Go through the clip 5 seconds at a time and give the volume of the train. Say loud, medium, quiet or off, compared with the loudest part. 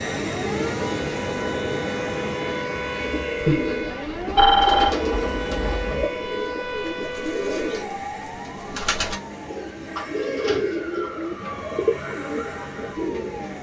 loud, medium, medium.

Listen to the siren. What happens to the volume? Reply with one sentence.
The volume of the siren goes down.